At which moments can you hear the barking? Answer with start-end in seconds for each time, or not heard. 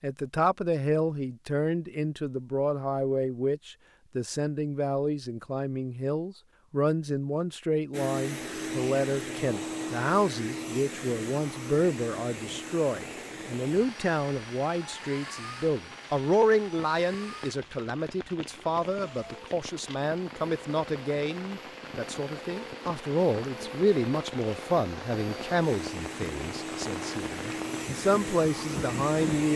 not heard.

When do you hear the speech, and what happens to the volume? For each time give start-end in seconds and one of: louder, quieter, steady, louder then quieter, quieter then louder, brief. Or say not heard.
0.0-29.5 steady.